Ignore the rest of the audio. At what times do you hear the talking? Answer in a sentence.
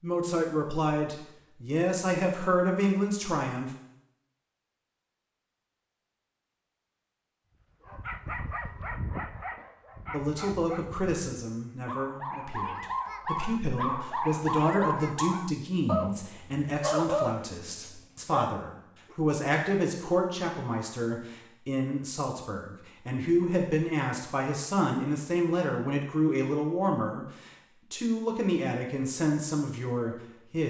The talking can be heard from 0.0 to 3.8 s and from 10.1 to 30.6 s.